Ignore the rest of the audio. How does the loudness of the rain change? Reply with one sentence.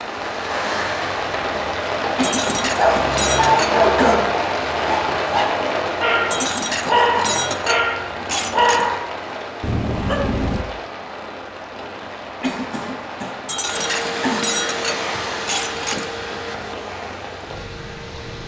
The loudness of the rain goes down.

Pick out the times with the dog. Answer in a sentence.
You can hear the dog from 2.8 to 10.7 s.